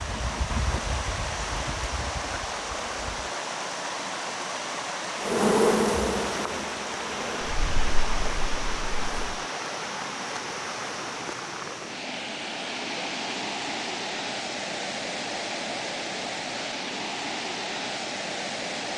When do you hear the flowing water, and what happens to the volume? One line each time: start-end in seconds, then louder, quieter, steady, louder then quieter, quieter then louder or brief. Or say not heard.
0.0-18.9 steady.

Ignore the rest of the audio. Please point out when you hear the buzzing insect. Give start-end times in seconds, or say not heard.
0.0-3.3, 5.2-9.4.